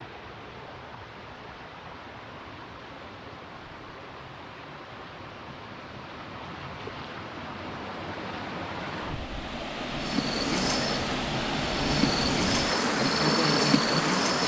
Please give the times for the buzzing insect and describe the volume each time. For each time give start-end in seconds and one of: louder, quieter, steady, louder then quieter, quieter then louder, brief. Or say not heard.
9.9-14.4 quieter then louder.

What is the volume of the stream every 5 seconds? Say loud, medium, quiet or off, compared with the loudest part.
quiet, medium, loud.